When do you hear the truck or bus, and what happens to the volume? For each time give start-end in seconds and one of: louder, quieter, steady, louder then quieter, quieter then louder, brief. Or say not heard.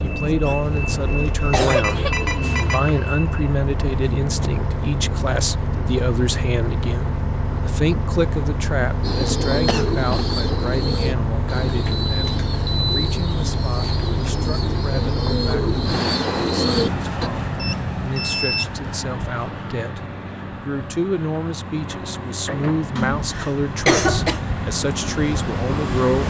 0.0-26.2 steady.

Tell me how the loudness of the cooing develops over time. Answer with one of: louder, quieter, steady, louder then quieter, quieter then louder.
quieter then louder.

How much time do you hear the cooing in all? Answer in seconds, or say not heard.
8 s.